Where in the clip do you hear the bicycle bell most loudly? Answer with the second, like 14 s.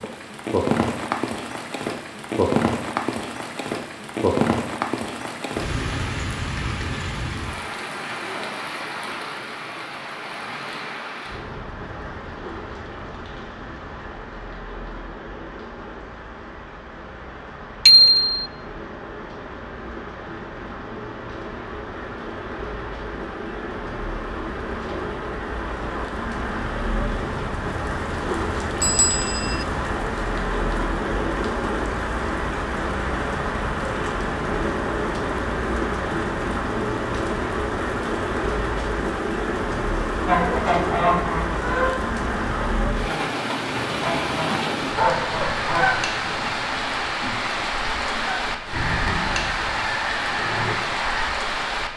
18 s.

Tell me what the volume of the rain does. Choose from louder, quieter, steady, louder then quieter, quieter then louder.
quieter then louder.